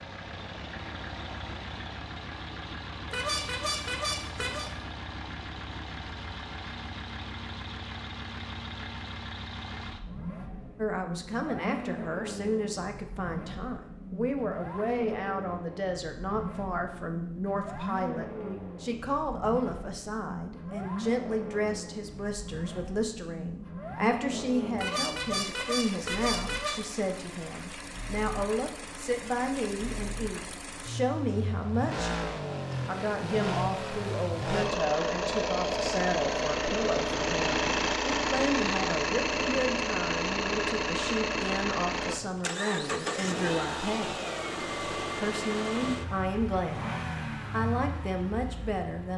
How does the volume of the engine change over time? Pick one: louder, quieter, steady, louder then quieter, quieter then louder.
louder.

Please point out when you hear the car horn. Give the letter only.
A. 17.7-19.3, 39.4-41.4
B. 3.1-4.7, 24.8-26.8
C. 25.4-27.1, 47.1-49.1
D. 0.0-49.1
B.